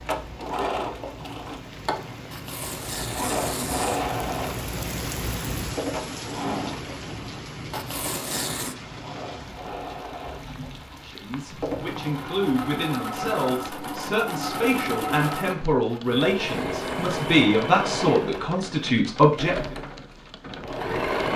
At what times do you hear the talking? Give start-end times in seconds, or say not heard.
11.1-19.6.